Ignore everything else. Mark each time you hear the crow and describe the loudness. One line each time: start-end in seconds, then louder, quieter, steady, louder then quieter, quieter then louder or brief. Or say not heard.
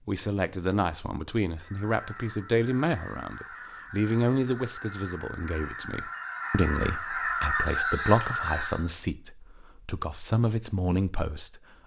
1.6-8.8 louder.